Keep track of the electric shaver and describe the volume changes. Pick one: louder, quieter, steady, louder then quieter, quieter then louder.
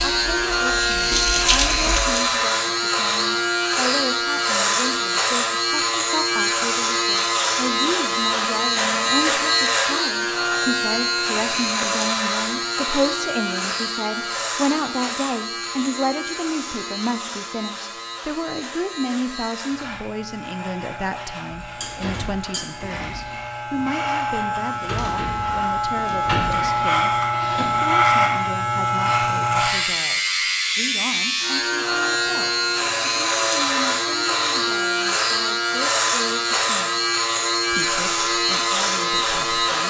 quieter then louder.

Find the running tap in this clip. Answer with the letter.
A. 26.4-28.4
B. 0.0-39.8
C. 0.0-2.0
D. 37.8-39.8
C.